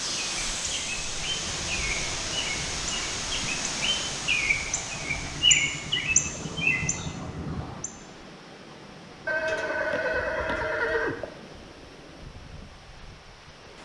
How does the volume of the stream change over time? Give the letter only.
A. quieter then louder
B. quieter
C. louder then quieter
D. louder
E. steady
B.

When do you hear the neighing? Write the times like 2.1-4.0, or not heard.
9.2-11.3.